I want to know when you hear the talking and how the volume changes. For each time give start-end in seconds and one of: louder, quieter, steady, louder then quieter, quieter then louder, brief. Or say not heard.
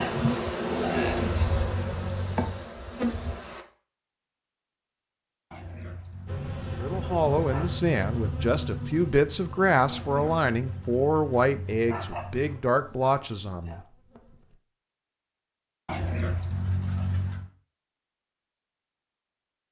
6.8-13.8 steady.